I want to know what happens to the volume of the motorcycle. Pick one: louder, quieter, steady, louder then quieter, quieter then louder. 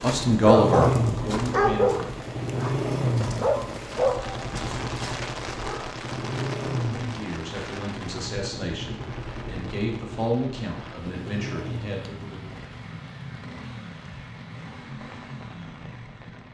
quieter.